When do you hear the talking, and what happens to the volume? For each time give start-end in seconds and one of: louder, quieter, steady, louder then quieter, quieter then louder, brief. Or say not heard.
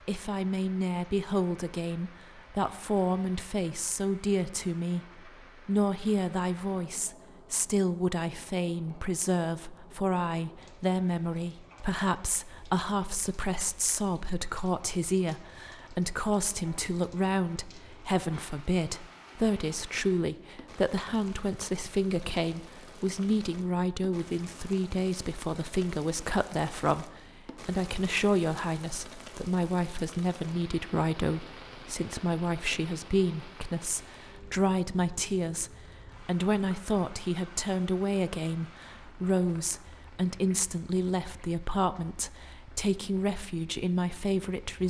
0.1-44.8 steady.